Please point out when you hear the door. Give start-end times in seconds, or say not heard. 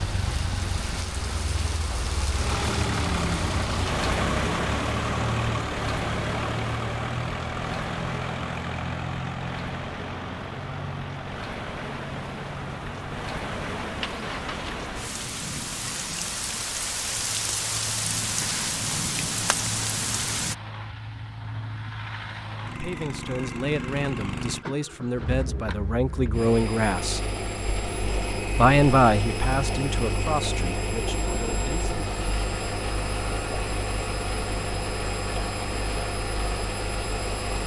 not heard.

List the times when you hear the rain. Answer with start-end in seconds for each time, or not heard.
0.0-20.6.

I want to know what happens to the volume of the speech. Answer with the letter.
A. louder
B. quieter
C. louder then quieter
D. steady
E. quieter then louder
C.